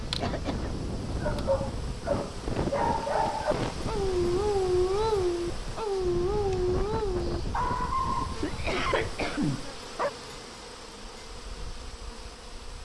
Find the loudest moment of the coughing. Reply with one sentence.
The loudest moment of the coughing is at 9 seconds.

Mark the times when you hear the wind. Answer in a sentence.
The wind can be heard from 0.0 to 9.3 s.